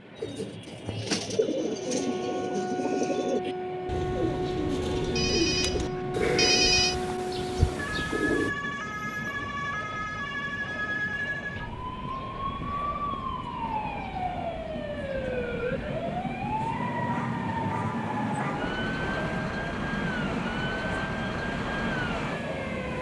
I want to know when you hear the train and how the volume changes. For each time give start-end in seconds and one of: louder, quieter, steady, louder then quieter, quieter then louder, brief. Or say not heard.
0.0-22.9 louder.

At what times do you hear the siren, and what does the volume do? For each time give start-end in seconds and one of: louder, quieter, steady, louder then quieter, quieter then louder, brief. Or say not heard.
1.8-22.9 steady.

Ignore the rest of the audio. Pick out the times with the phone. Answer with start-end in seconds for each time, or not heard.
5.2-7.0.